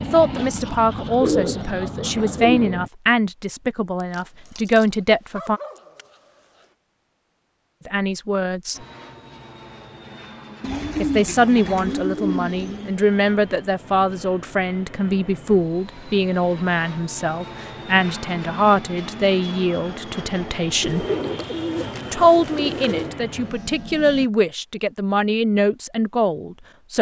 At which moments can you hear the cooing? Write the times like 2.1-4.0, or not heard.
0.3-2.8, 10.6-13.0, 20.8-23.1.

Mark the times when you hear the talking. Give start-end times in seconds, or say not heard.
0.0-5.6, 7.8-8.8, 10.9-21.1, 22.1-26.9.